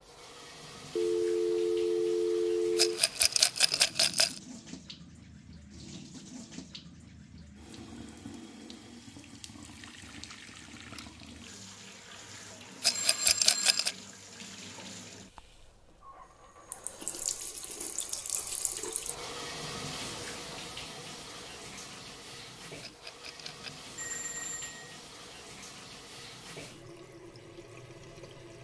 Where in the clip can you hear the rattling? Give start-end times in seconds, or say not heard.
2.8-4.4, 12.8-13.9, 22.8-23.8.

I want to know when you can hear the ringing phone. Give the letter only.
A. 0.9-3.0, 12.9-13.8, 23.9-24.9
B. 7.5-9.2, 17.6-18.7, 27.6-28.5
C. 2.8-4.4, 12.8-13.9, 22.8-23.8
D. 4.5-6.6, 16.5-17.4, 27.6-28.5
A.